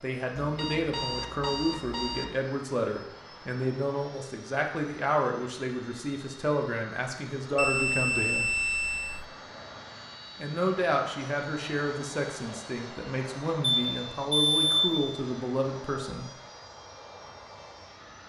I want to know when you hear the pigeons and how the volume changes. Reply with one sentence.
You can't hear the pigeons here.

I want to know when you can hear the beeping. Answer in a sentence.
You can hear the beeping from 0.3 to 2.4 s, from 7.5 to 9.2 s and from 13.6 to 15.0 s.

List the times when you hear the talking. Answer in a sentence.
You can hear the talking from 0.0 to 8.5 s and from 10.4 to 16.2 s.